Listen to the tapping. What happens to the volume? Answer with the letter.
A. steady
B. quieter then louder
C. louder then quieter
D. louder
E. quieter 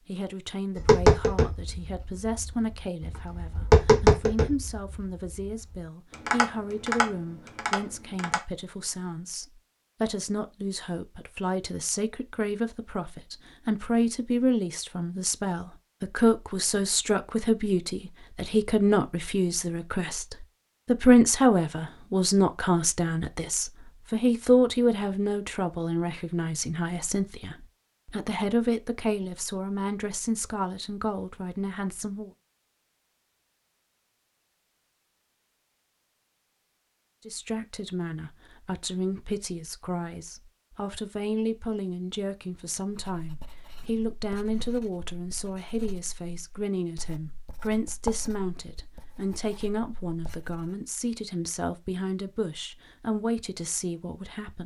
C.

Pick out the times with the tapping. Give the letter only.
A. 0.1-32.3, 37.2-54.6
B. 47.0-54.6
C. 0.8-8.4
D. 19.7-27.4
C.